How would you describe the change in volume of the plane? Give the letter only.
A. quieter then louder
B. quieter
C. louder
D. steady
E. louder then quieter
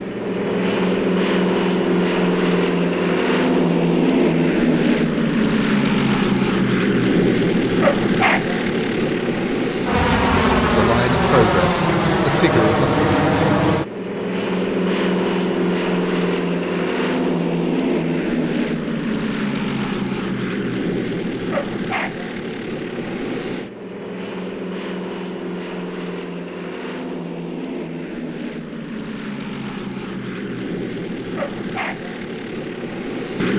B.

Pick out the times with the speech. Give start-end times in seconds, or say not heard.
10.7-12.9.